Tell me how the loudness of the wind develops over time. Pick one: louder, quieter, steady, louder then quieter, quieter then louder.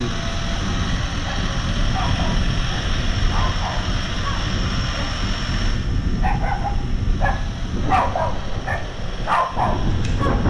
steady.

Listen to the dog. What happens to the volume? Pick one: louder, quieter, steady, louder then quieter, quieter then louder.
louder.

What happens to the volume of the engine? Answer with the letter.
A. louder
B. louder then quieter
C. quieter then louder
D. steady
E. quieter
E.